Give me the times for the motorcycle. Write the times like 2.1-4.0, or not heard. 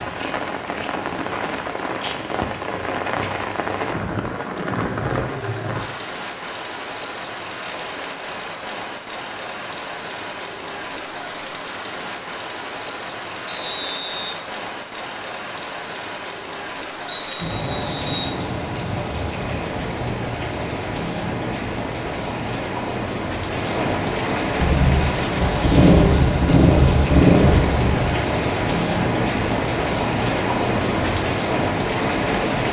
24.6-28.1.